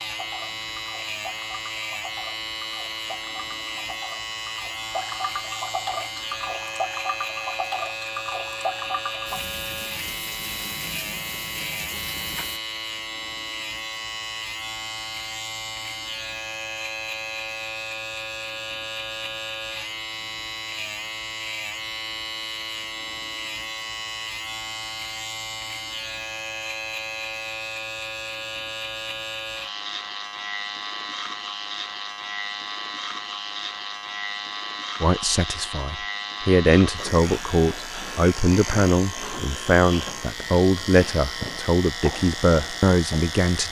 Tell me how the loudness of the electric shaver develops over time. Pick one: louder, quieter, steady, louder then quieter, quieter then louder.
steady.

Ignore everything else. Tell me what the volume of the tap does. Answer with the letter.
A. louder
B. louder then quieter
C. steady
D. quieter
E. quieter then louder
B.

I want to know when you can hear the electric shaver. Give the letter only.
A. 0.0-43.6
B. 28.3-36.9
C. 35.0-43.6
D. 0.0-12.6
A.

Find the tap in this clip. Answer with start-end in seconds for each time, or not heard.
0.0-12.6.